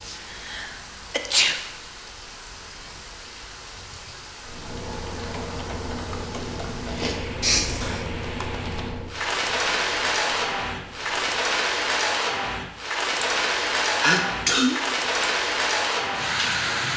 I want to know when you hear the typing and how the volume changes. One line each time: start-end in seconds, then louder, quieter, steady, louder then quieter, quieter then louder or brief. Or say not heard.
4.4-11.3 quieter.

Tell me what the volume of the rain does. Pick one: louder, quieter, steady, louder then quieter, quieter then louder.
louder.